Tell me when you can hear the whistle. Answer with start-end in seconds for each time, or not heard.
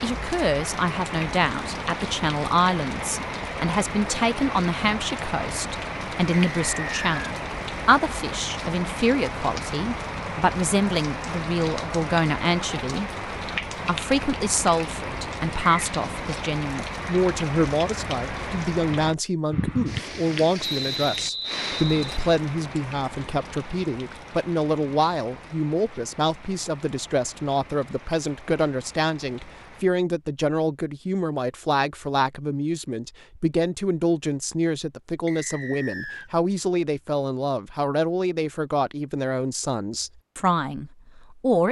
6.5-7.3, 20.6-22.4, 35.2-36.3.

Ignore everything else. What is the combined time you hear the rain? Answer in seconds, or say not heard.
30 s.